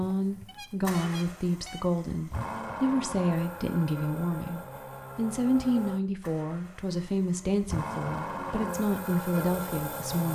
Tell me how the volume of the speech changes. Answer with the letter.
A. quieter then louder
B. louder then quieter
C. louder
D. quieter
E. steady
E.